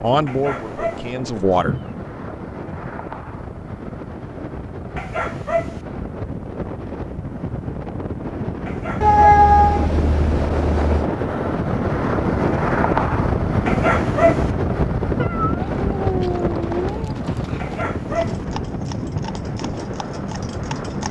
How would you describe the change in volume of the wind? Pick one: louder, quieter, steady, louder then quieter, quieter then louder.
louder then quieter.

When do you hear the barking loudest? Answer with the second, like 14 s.
14 s.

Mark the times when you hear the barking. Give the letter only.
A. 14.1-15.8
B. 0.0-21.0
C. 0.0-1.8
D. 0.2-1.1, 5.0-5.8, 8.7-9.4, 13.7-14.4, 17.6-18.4
D.